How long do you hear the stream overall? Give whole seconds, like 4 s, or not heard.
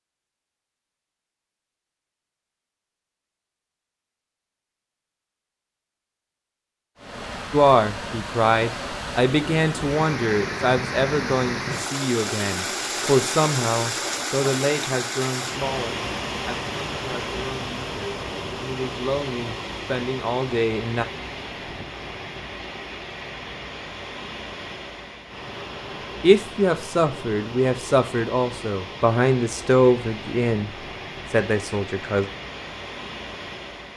27 s.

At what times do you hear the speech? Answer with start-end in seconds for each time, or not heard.
7.5-21.1, 26.2-32.2.